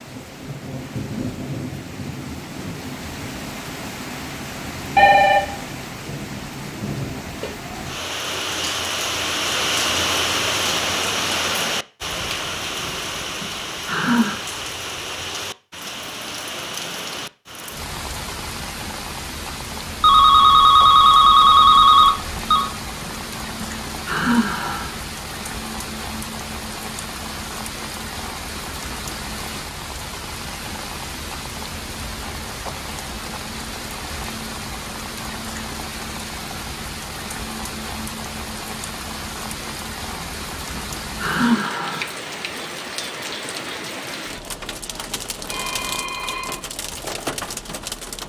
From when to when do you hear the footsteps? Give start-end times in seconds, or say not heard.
not heard.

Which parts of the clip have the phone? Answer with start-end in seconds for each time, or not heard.
5.0-5.5, 20.0-22.7, 45.5-46.6.